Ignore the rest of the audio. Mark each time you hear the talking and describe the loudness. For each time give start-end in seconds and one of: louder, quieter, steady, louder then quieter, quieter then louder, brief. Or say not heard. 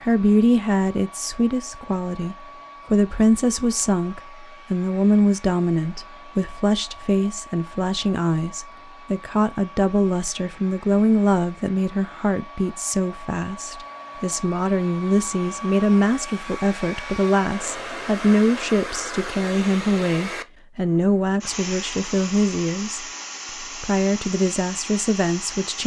0.0-25.8 steady.